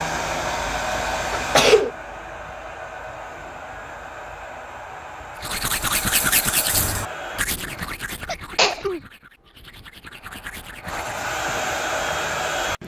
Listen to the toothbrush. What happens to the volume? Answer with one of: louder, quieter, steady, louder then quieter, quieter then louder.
quieter then louder.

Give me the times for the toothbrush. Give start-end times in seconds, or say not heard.
5.4-11.2.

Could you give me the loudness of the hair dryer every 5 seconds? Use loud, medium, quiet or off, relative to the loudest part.
loud, medium, loud.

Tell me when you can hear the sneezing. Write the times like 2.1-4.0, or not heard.
1.3-1.9, 8.2-9.0.